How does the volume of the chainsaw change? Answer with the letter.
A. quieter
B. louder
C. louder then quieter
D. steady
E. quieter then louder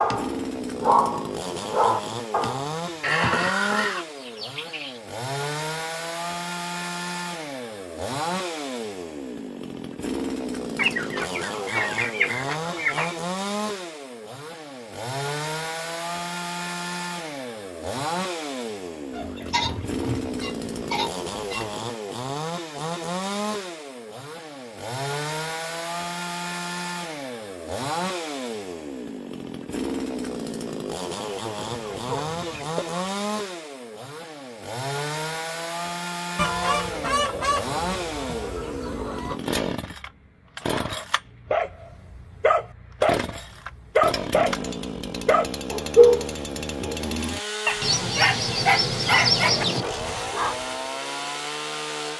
D.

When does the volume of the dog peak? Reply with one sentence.
The loudest moment of the dog is at 46 seconds.